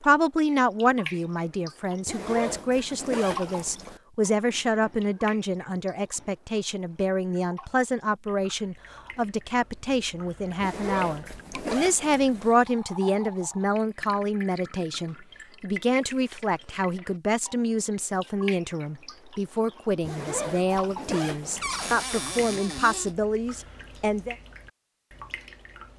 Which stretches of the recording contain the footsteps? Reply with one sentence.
You can't hear the footsteps here.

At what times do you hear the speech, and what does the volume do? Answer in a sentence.
You can hear the speech from 0.0 to 24.4 s, at a steady volume.